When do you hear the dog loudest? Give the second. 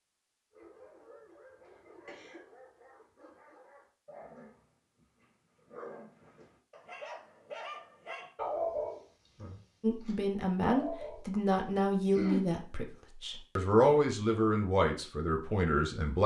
9 s.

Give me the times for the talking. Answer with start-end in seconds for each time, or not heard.
9.8-16.2.